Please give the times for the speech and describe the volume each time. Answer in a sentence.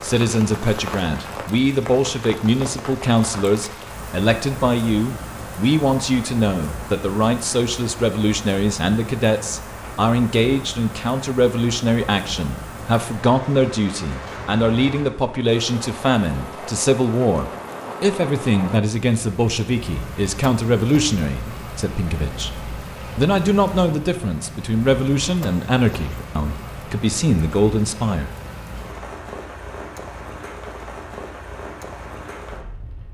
You can hear the speech from 0.0 to 28.3 s, at a steady volume.